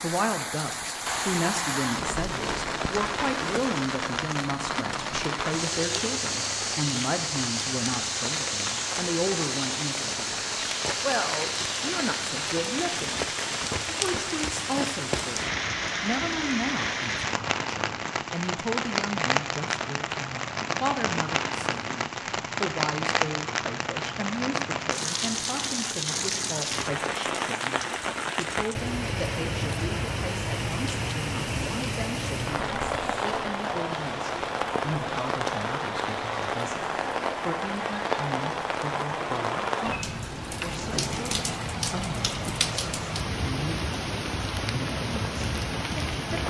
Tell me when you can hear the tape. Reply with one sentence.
You can't hear the tape here.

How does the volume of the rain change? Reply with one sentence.
The loudness of the rain stays about the same.